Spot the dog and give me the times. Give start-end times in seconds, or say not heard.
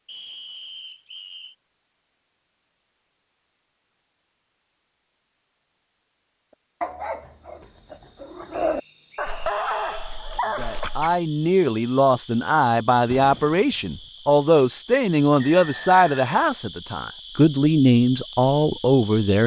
6.5-11.2.